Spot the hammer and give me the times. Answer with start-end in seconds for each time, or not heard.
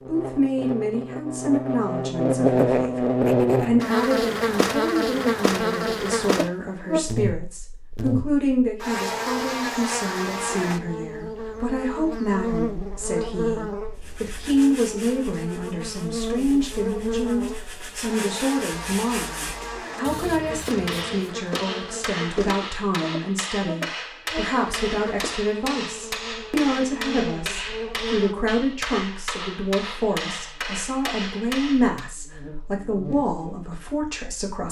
20.6-32.1.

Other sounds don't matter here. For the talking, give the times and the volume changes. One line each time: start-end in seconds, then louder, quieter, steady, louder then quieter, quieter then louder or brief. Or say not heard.
0.1-34.6 steady.